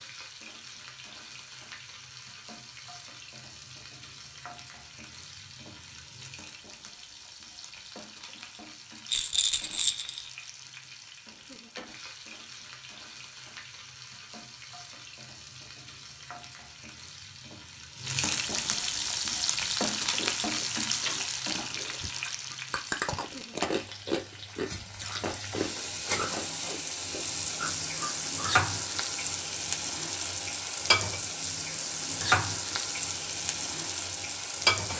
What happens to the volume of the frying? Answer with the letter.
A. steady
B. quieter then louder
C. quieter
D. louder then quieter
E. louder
E.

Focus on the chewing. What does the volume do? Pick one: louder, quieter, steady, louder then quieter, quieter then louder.
louder then quieter.